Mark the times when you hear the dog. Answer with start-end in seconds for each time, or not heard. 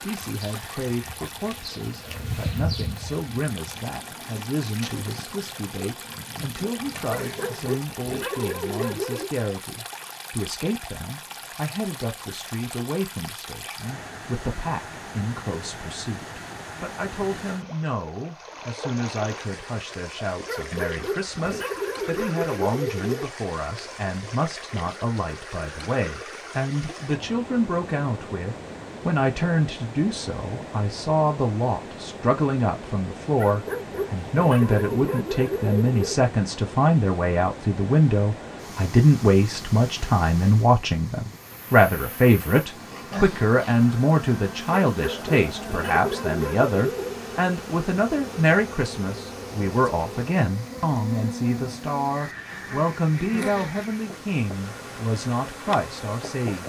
7.0-9.3, 20.4-23.2, 33.4-36.2, 44.9-47.2.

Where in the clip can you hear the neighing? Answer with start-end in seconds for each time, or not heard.
not heard.